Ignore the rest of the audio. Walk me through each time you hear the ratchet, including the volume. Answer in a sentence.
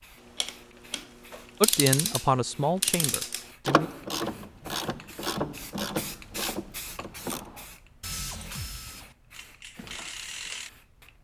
You can hear the ratchet from 0.2 to 10.7 s, getting quieter.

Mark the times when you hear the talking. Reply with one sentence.
You can hear the talking from 1.6 to 3.9 s.